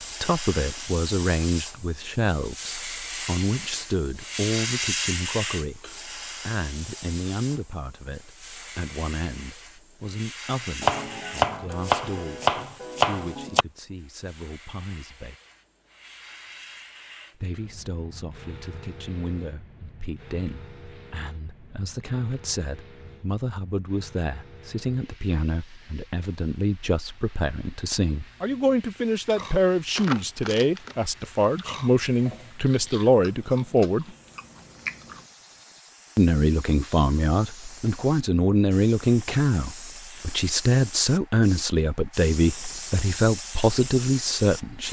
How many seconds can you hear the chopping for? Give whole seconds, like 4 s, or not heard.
3 s.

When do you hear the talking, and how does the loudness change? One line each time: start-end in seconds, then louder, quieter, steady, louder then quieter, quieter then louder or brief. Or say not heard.
0.2-15.3 quieter
17.4-34.1 louder
36.1-44.8 steady.